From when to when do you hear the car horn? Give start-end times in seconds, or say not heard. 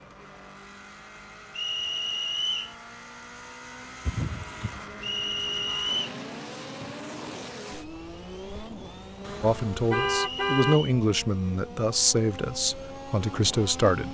4.0-4.8, 9.2-10.8.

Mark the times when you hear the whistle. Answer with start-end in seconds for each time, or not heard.
1.6-2.8, 5.0-6.1, 10.2-10.9.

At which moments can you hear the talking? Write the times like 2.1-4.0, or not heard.
9.4-14.0.